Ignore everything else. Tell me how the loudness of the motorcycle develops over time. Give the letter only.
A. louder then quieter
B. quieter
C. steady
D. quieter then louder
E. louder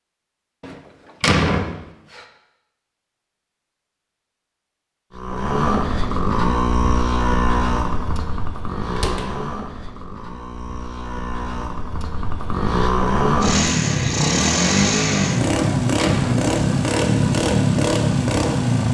D.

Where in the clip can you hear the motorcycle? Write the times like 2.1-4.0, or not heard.
5.1-18.8.